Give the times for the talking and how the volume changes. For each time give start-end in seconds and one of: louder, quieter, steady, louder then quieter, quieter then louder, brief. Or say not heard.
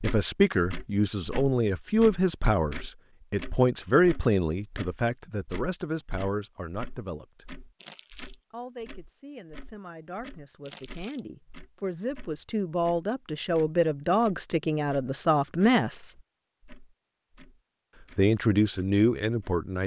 0.0-7.5 quieter
8.5-16.1 louder
18.1-19.8 brief.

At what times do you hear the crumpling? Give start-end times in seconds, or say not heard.
7.8-8.4, 10.7-11.3.